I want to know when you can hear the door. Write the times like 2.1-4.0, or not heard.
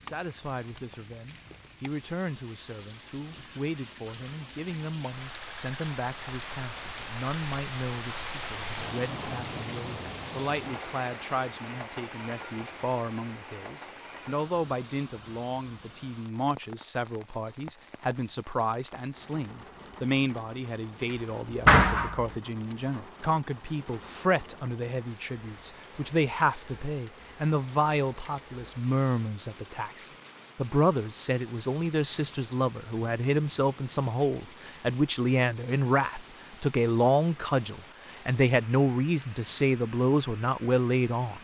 21.6-22.3.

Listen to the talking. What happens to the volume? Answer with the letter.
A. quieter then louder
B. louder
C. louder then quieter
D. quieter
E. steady
B.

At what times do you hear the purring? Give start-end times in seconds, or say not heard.
not heard.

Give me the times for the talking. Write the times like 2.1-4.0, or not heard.
0.0-41.3.